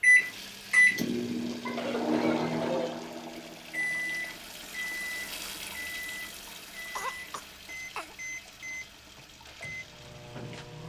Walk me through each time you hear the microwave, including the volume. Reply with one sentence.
You can hear the microwave from 0.0 to 10.8 s, getting quieter.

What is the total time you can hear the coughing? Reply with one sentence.
The coughing can be heard for 3 seconds in total.